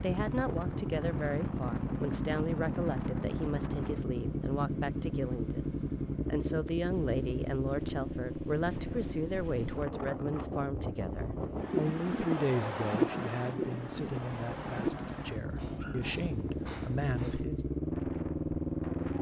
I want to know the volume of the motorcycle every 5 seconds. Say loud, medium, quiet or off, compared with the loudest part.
loud, loud, medium, loud.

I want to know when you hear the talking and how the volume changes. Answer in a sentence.
The talking can be heard from 0.0 to 17.6 s, at a steady volume.